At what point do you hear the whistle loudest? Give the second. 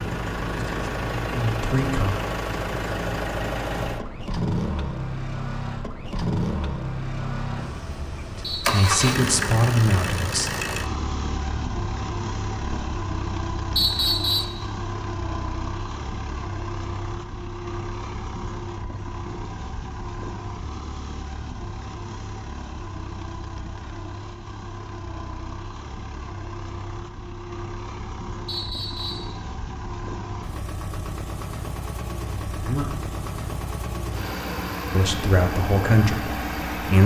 14 s.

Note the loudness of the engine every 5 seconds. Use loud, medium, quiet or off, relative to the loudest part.
loud, loud, loud, medium, medium, medium, medium, loud.